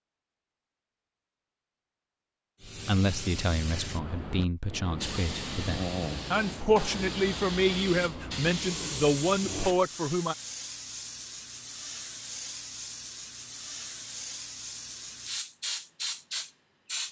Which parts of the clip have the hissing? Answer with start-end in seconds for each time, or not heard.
2.6-17.0.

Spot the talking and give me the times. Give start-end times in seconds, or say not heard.
2.8-10.3.